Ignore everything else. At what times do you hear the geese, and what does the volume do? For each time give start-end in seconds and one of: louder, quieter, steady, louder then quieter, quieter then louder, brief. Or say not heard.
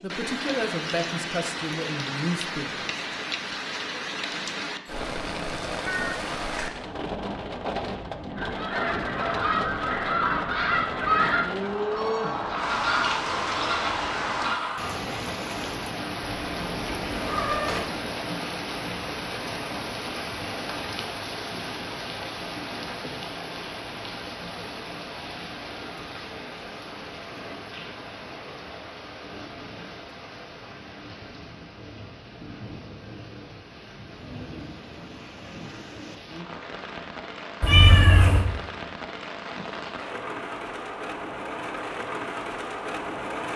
8.3-15.0 steady.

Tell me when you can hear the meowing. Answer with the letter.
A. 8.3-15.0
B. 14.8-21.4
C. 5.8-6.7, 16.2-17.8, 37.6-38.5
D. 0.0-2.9
C.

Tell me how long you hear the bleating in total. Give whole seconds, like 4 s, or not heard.
not heard.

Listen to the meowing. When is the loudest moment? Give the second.
38 s.